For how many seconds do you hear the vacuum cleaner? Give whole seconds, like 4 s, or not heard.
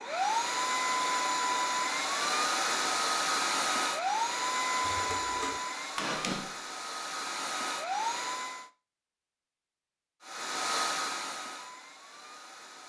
11 s.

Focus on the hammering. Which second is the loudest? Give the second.
6 s.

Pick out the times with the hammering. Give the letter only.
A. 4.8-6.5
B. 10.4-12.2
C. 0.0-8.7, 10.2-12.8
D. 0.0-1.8
A.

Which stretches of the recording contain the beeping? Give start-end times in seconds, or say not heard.
not heard.